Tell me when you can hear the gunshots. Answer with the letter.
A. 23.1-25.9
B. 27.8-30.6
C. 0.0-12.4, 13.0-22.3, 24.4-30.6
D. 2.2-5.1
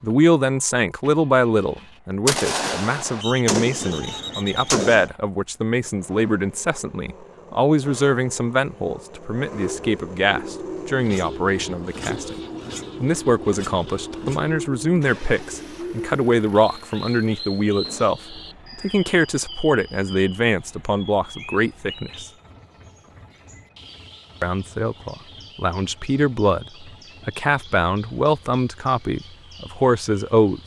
D.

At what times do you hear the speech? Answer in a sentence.
The speech can be heard from 0.0 to 12.4 s, from 13.0 to 22.3 s and from 24.4 to 30.6 s.